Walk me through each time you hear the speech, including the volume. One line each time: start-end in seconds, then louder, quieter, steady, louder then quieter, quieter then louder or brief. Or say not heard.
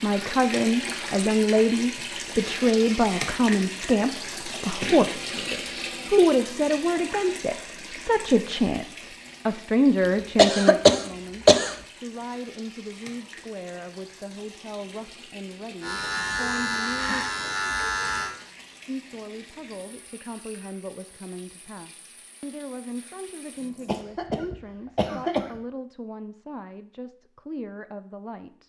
0.0-17.2 quieter
18.9-28.6 steady.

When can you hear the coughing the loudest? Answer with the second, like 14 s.
11 s.